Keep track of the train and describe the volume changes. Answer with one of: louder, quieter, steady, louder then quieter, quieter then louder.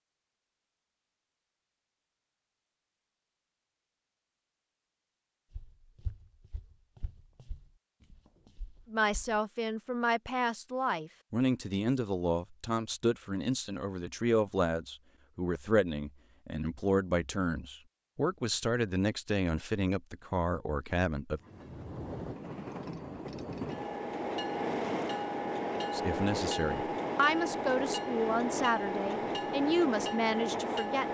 louder.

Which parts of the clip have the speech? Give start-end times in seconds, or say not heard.
8.9-21.4, 25.9-31.1.